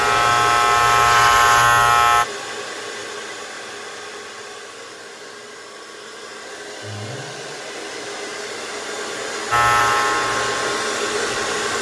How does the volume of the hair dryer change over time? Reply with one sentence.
The volume of the hair dryer goes down, then up.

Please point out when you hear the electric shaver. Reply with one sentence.
You can hear the electric shaver from 0.0 to 2.2 s and from 9.5 to 11.6 s.